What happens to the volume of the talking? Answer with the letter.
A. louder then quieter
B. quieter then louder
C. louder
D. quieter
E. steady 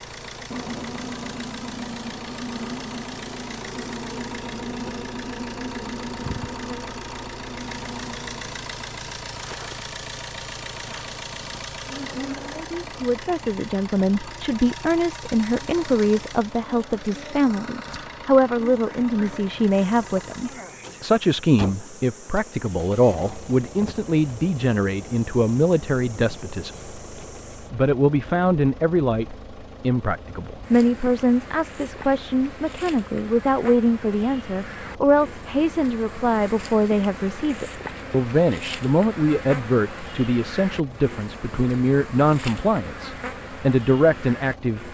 E.